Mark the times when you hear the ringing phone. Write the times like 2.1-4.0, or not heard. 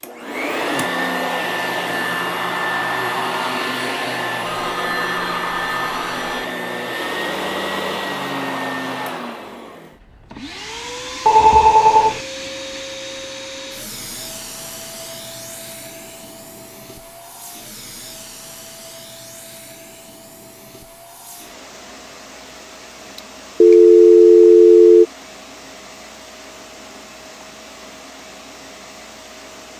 4.5-6.5, 11.2-12.2, 23.6-25.1.